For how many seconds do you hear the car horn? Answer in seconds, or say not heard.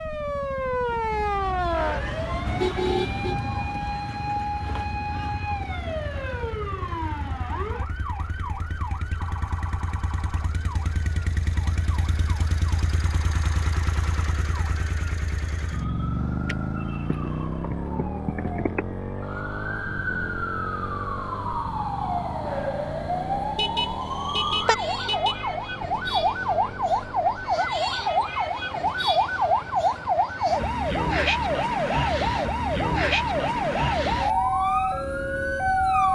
4 s.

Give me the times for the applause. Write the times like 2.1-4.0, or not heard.
not heard.